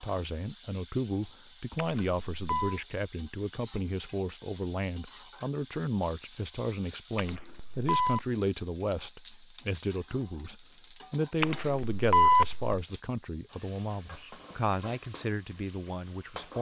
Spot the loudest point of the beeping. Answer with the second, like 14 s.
12 s.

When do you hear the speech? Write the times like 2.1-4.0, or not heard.
0.0-16.5.